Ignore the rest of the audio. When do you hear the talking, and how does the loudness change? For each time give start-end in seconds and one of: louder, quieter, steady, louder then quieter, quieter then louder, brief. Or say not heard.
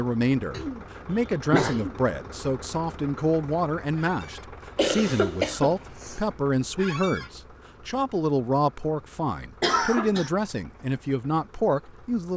0.0-12.3 steady.